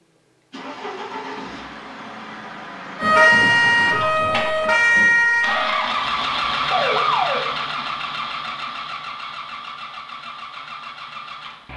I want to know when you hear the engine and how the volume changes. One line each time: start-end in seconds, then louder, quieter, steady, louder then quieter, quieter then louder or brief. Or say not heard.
0.0-11.7 louder then quieter.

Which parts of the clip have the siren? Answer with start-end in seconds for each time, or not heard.
3.0-7.5.